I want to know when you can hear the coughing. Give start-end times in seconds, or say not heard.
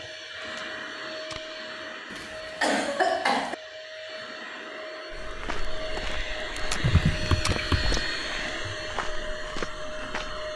2.1-3.5, 6.8-8.1.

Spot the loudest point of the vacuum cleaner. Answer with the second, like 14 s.
8 s.